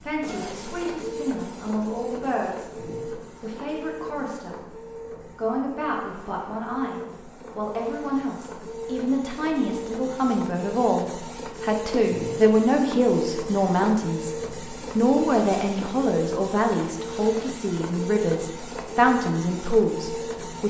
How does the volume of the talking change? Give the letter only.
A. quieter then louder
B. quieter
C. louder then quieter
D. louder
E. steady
D.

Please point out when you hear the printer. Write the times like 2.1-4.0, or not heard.
0.0-20.6.